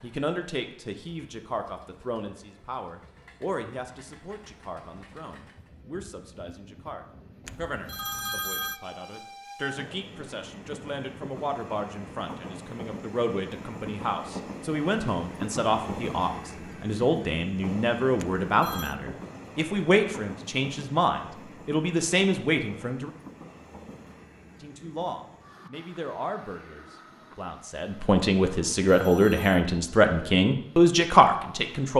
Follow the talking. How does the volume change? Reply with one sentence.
The volume of the talking goes up.